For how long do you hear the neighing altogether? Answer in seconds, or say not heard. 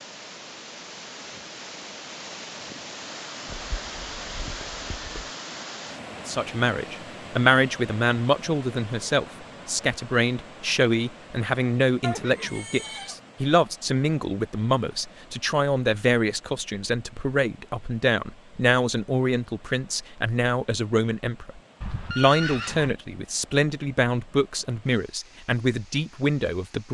4 s.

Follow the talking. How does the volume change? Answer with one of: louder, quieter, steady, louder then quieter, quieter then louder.
steady.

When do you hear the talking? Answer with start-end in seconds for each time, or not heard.
6.2-26.9.